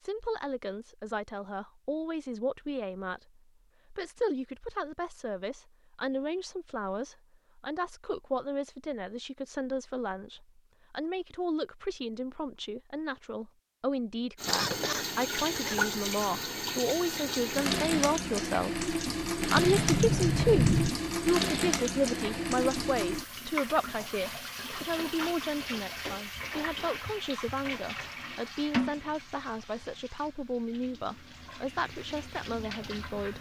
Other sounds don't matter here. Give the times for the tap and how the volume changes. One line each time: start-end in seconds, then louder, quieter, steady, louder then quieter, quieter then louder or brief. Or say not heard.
14.3-33.3 quieter.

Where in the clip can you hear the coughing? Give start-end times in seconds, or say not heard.
14.4-15.8.